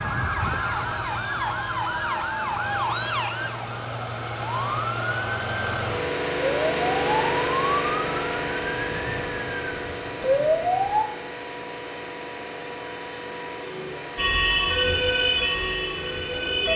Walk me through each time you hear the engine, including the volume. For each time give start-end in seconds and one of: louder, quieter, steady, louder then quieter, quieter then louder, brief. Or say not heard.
0.0-16.7 louder then quieter.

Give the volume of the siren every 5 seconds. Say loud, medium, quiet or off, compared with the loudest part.
medium, medium, loud, loud.